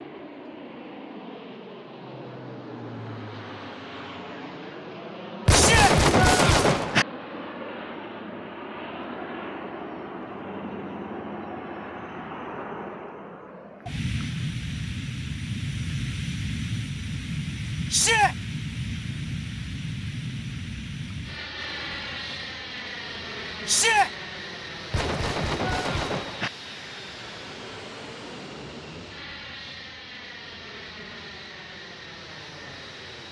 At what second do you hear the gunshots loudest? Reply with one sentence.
The loudest moment of the gunshots is at 6 seconds.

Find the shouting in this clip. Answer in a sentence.
You can hear the shouting from 5.5 to 6.0 s, from 17.9 to 18.4 s and from 23.6 to 24.1 s.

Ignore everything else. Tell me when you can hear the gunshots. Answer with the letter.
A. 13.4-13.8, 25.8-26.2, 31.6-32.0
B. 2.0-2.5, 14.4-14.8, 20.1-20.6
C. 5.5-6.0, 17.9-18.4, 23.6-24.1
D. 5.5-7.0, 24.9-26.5
D.